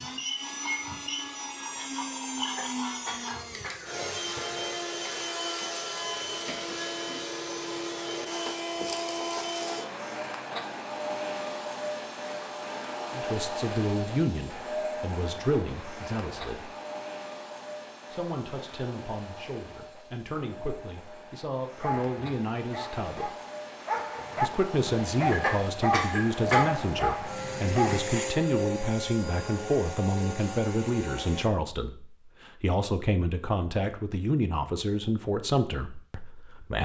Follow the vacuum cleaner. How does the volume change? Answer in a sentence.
The volume of the vacuum cleaner goes down, then up.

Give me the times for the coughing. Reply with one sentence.
You can hear the coughing from 2.4 to 4.0 s and from 25.2 to 26.8 s.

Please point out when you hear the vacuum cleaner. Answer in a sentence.
You can hear the vacuum cleaner from 0.0 to 31.5 s.